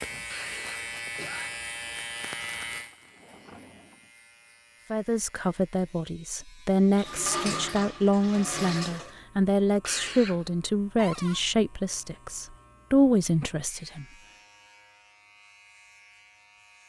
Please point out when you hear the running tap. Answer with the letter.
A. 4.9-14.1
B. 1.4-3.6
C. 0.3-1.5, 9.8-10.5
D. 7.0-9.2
D.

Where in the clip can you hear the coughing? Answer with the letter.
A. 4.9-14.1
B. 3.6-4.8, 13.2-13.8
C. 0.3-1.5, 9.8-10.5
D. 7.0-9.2
C.